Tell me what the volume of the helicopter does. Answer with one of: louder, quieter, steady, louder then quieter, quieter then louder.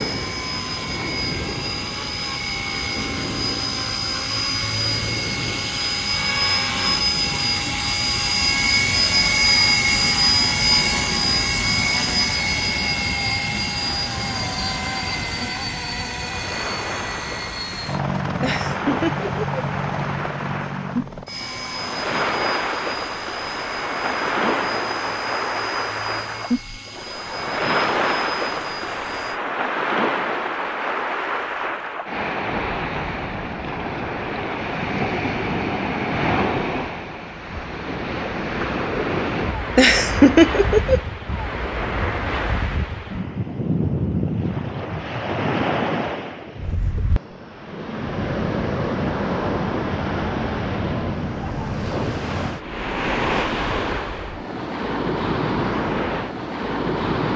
louder then quieter.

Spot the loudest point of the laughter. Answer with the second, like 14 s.
40 s.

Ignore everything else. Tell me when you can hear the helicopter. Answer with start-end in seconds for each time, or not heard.
0.0-29.4.